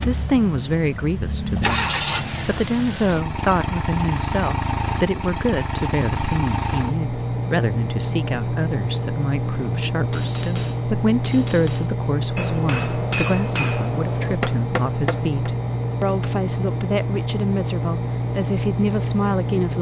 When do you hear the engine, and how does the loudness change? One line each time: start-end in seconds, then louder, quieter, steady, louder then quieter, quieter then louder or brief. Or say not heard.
0.0-19.7 steady.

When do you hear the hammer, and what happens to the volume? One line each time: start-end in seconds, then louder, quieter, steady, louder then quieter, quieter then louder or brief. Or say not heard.
9.6-15.5 steady.